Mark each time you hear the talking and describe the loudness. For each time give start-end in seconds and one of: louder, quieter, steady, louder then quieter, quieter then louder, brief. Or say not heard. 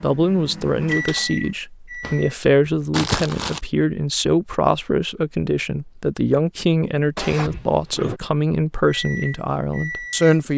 0.0-10.5 steady.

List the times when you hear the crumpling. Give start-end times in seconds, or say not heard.
2.9-3.6.